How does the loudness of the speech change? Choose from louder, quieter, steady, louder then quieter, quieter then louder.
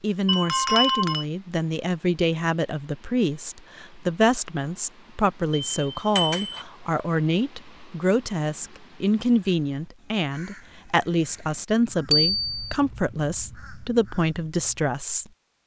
steady.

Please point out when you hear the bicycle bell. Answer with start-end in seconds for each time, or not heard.
0.2-1.2, 5.5-6.7, 12.1-12.8.